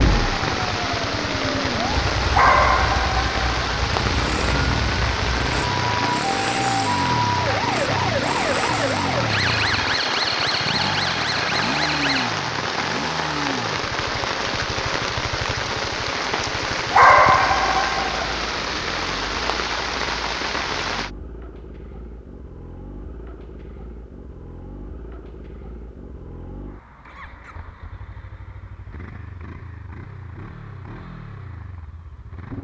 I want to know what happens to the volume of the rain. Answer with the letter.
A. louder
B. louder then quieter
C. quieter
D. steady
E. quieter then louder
D.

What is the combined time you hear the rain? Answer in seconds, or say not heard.
21 s.